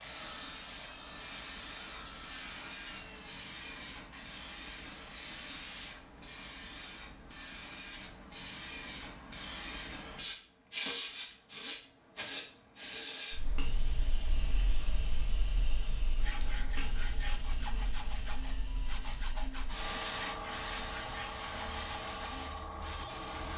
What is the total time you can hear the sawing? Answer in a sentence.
The sawing can be heard for 12 seconds in total.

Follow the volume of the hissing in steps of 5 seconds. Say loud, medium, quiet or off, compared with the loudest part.
medium, medium, loud, medium, loud.